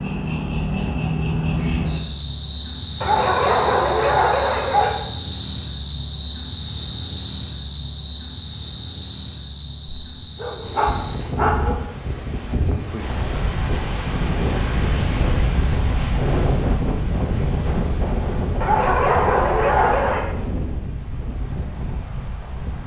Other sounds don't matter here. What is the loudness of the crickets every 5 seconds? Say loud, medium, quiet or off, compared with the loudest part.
loud, loud, medium, quiet, quiet.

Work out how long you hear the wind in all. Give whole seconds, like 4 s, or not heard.
12 s.